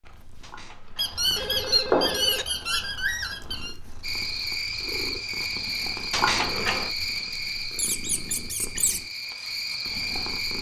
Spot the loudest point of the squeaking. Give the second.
2 s.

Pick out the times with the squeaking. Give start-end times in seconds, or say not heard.
0.9-3.8, 7.8-9.0.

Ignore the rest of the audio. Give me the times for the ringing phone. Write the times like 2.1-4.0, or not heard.
0.4-2.5, 6.1-6.9.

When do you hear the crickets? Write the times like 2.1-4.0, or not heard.
4.0-10.5.